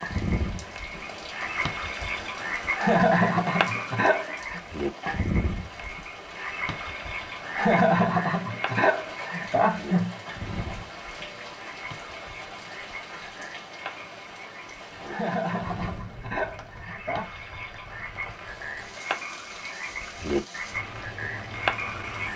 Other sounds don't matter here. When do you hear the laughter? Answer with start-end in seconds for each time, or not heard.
2.8-4.6, 7.5-10.2, 15.1-17.3.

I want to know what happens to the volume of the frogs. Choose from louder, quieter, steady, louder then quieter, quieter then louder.
quieter then louder.